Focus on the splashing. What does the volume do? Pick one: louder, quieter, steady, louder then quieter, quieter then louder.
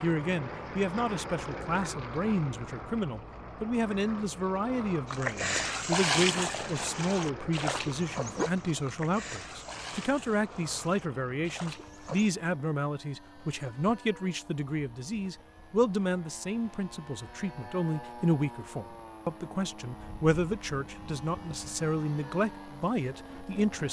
quieter.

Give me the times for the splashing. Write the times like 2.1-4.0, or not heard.
5.0-12.3.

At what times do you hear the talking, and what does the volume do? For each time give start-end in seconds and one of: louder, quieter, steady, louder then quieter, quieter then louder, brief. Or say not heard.
0.0-23.8 steady.